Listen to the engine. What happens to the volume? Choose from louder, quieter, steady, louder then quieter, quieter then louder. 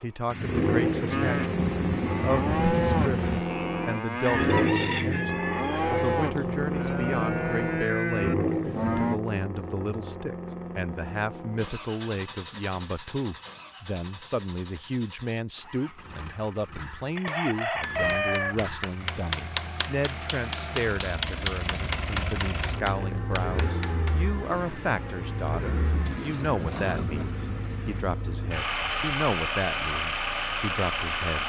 quieter then louder.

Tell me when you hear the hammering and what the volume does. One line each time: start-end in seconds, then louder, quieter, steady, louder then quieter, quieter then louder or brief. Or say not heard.
17.1-24.2 louder then quieter.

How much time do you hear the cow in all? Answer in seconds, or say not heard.
8 s.